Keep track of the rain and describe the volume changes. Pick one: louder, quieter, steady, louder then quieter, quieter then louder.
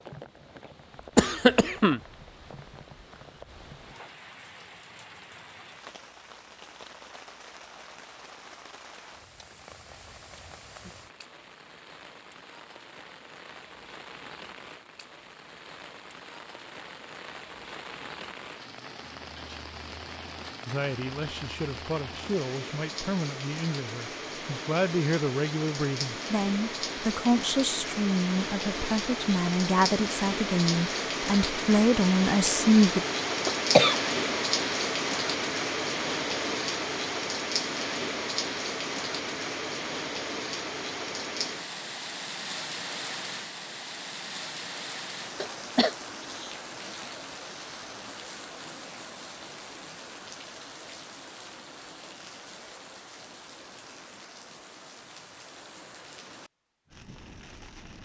louder then quieter.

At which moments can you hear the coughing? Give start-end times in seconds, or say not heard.
1.1-2.0, 33.5-34.0, 45.4-46.5.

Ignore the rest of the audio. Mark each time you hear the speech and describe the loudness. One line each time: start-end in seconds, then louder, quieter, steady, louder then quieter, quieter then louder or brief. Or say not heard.
20.6-33.0 louder.